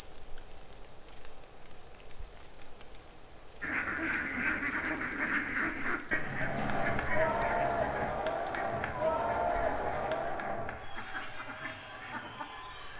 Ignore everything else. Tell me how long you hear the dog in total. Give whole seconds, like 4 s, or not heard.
not heard.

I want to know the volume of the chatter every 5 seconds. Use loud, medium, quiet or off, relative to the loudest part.
off, loud, medium.